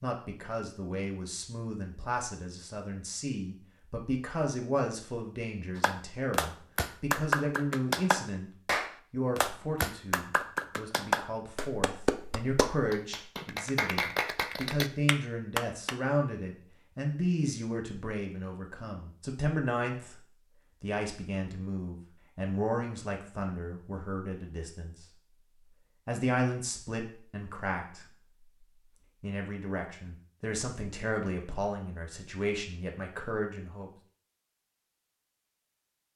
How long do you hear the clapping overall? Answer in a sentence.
The clapping can be heard for 10 seconds in total.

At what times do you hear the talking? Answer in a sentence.
The talking can be heard from 0.0 to 20.1 s, from 20.8 to 25.1 s, from 26.1 to 28.1 s and from 29.2 to 33.9 s.